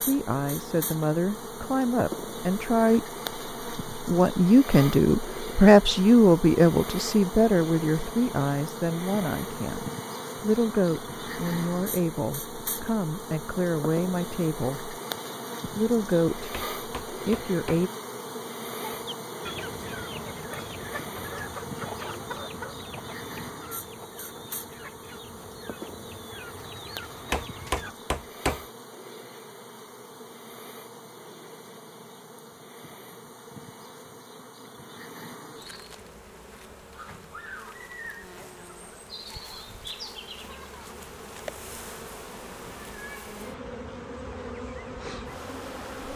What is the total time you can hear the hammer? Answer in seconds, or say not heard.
3 s.